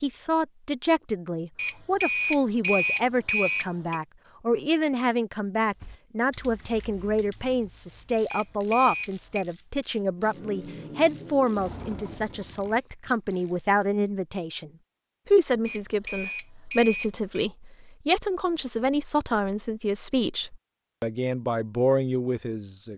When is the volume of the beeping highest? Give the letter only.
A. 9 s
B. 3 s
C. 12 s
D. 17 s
B.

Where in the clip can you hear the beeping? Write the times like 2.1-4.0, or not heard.
1.6-4.0, 8.3-9.4, 15.7-17.4.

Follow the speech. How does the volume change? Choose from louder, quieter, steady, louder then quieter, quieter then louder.
steady.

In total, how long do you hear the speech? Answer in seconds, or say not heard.
23 s.